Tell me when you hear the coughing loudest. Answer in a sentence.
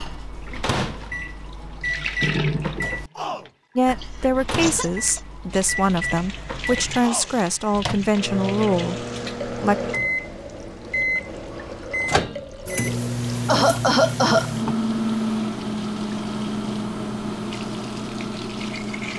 The loudest moment of the coughing is at 14 seconds.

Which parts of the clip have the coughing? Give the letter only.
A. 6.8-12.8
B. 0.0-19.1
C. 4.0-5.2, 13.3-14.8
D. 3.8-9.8
C.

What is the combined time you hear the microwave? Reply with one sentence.
You can hear the microwave for 19 seconds altogether.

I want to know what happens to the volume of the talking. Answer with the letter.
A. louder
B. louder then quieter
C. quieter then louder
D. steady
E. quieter
D.